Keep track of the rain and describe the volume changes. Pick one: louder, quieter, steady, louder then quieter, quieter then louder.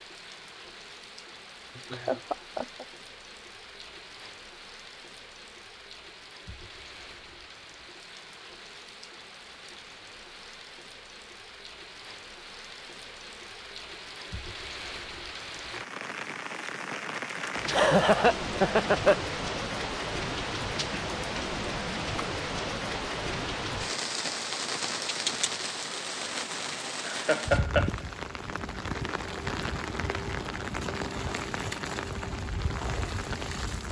louder.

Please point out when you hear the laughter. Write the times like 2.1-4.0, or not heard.
1.8-2.9, 17.6-19.1, 27.1-27.9.